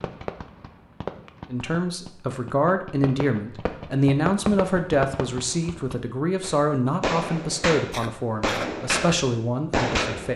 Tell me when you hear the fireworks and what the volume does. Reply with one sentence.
The fireworks can be heard from 0.0 to 10.3 s, getting louder.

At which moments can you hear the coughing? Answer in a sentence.
You can hear the coughing from 7.9 to 8.8 s.